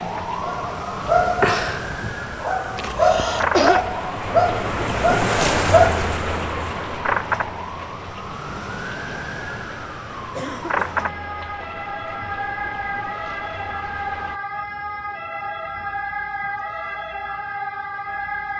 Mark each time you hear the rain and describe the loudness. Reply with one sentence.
The rain can be heard from 0.0 to 14.4 s, getting louder then quieter.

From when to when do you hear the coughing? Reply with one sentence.
The coughing can be heard from 2.8 to 3.9 s and from 10.3 to 11.2 s.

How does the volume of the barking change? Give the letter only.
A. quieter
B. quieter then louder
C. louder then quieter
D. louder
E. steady
B.